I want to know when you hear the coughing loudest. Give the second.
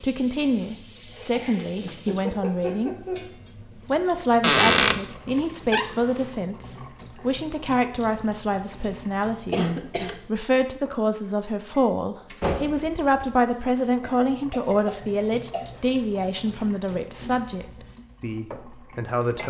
10 s.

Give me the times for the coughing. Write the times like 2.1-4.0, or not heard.
1.3-3.2, 9.5-10.2, 14.0-15.7.